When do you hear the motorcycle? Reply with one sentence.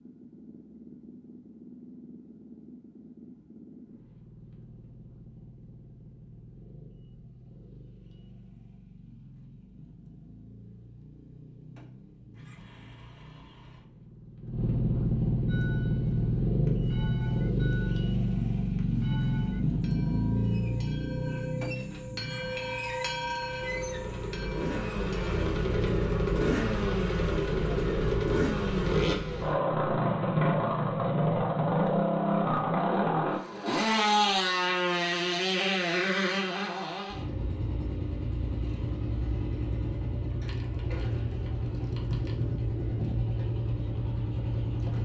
The motorcycle can be heard from 0.0 to 44.9 s.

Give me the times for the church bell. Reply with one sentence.
You can hear the church bell from 15.4 to 25.4 s.